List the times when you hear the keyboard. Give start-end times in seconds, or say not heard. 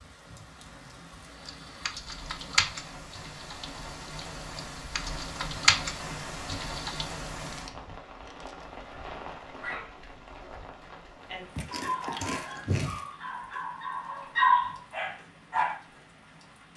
1.4-7.1.